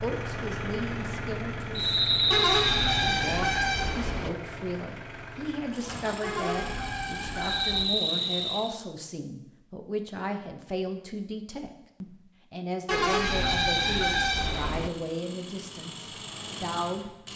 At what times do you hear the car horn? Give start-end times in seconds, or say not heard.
2.3-4.3, 6.2-7.9, 12.8-14.9.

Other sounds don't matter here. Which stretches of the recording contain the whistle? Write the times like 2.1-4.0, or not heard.
1.8-3.2, 7.4-8.7, 13.3-14.8.